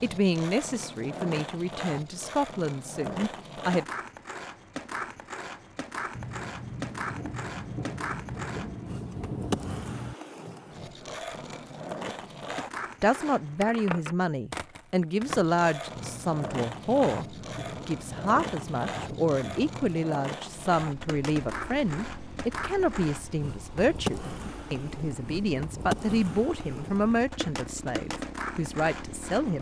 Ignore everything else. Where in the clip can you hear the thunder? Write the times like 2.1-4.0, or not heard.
6.1-10.2, 15.9-19.9.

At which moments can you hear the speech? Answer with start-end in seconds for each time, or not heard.
0.0-3.9, 13.0-29.5.